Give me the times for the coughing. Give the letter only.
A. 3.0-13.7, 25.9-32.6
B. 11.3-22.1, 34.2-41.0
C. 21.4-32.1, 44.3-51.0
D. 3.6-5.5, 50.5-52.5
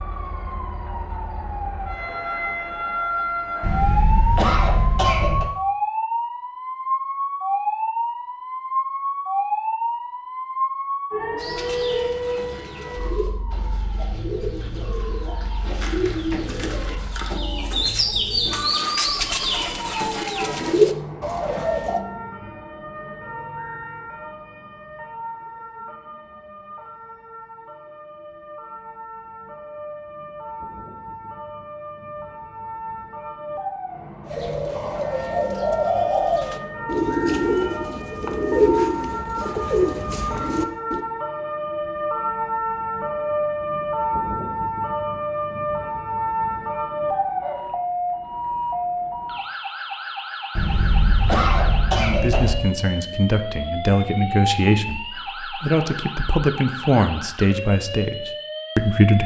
D.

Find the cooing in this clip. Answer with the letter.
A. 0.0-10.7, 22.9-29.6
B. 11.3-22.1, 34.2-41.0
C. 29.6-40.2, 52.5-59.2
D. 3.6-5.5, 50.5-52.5
B.